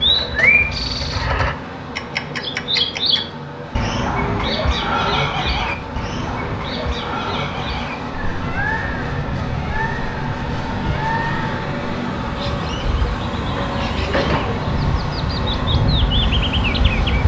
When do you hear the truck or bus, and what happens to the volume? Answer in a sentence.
You can hear the truck or bus from 0.0 to 17.2 s, getting louder.